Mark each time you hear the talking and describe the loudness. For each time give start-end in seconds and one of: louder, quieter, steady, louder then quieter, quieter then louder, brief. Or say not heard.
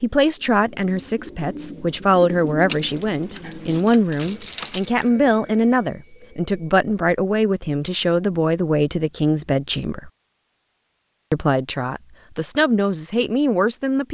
0.0-10.1 steady
11.3-14.0 brief.